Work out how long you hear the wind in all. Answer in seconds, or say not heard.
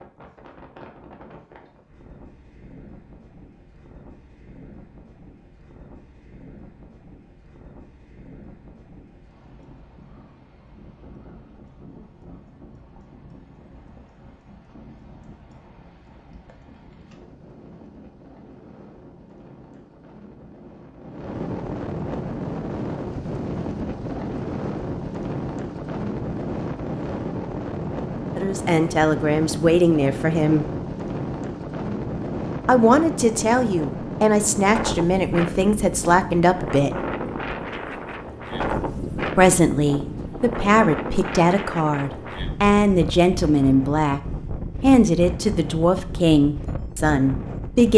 48 s.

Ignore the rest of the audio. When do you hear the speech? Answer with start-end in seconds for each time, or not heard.
28.4-30.6, 32.6-37.0, 39.4-44.2, 44.8-47.9.